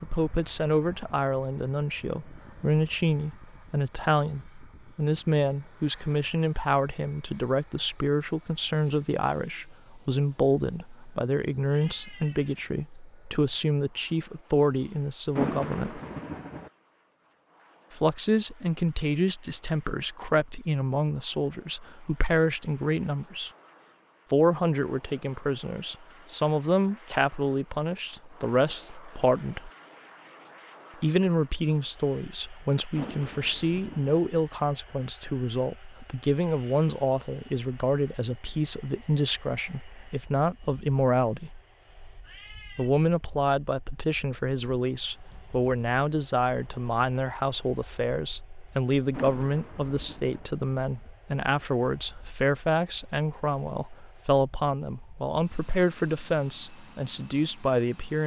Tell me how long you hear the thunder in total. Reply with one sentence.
You can hear the thunder for 4 seconds altogether.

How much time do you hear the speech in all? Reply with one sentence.
You can hear the speech for 53 seconds altogether.